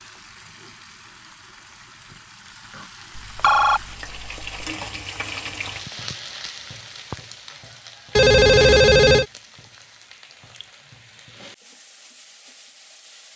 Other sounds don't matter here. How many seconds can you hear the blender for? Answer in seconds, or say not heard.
not heard.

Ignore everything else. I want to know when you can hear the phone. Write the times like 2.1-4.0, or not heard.
3.1-4.7, 8.2-9.2.